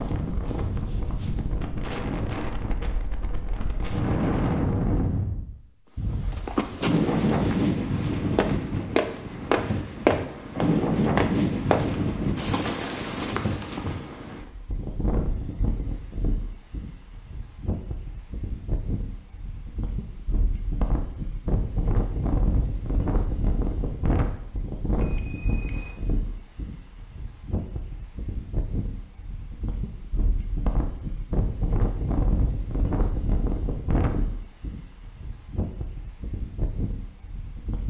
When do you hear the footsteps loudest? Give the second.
10 s.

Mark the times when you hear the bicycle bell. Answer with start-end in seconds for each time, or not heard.
24.9-26.0.